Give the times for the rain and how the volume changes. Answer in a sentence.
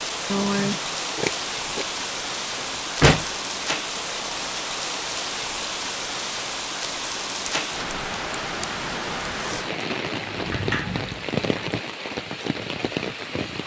The rain can be heard from 0.0 to 13.6 s, at a steady volume.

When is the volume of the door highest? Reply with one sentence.
The loudest moment of the door is at 3 seconds.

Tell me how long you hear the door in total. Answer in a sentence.
You can hear the door for 2 seconds altogether.